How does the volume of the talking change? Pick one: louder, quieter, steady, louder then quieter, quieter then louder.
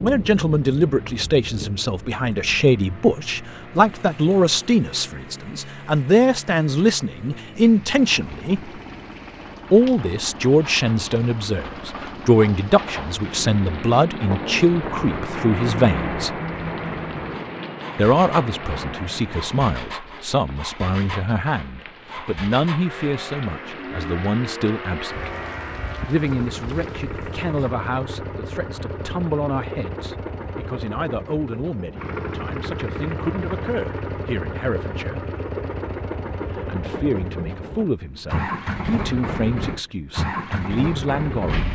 quieter.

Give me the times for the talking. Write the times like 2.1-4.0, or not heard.
0.0-8.6, 9.7-16.4, 17.9-25.3, 26.1-35.2, 36.5-41.6.